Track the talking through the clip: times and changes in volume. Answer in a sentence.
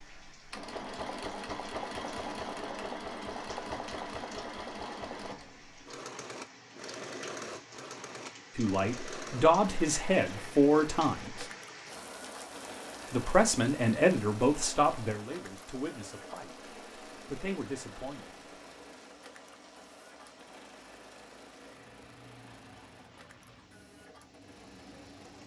The talking can be heard briefly from 8.6 to 11.4 s; and from 13.1 to 18.3 s, getting quieter then louder.